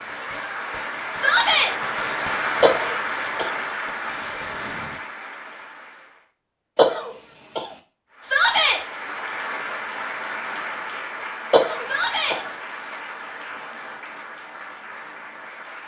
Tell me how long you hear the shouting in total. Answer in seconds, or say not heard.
2 s.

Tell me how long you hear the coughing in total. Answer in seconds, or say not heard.
3 s.